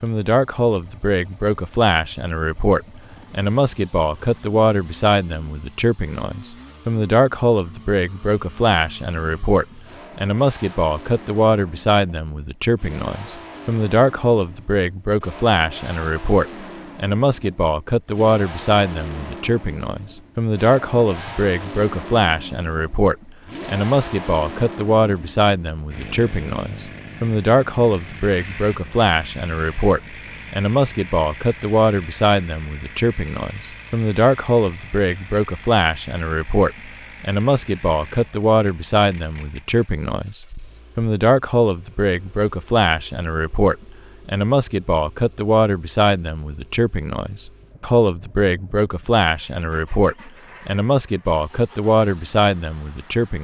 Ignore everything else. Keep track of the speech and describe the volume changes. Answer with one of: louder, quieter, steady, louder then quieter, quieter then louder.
steady.